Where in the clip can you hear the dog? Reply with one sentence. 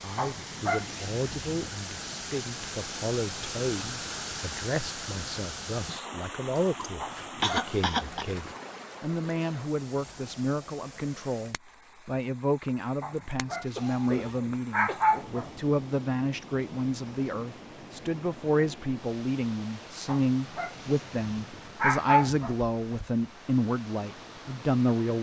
The dog can be heard from 0.1 to 1.7 s, from 7.0 to 8.6 s, from 13.0 to 15.5 s and from 20.1 to 22.6 s.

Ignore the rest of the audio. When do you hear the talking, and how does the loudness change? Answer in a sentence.
The talking can be heard from 0.0 to 25.1 s, getting louder.